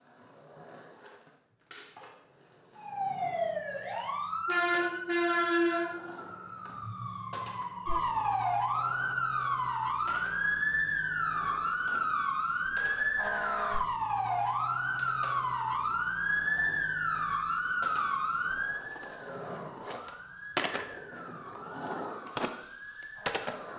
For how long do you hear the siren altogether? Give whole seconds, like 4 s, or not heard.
21 s.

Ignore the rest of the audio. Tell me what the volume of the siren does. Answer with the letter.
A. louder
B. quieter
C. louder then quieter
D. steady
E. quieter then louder
B.